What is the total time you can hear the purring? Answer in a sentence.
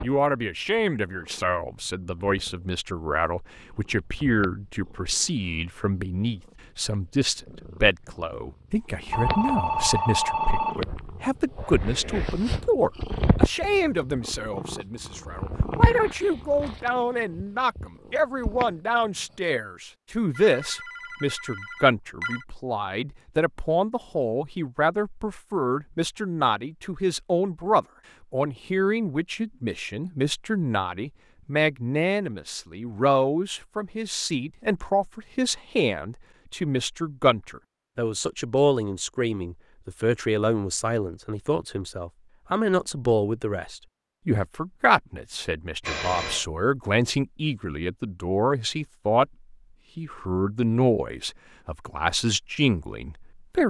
The purring can be heard for 19 seconds in total.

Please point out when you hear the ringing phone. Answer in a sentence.
The ringing phone can be heard from 9.1 to 10.8 s, from 20.4 to 22.4 s and from 45.8 to 46.5 s.